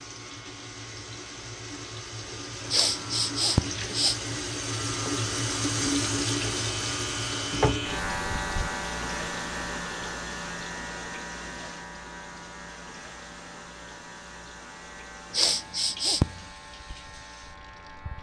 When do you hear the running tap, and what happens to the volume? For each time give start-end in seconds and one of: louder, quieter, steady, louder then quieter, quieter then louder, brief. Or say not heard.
0.0-18.1 louder then quieter.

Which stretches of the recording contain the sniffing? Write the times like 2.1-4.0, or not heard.
2.7-4.2, 15.3-16.4.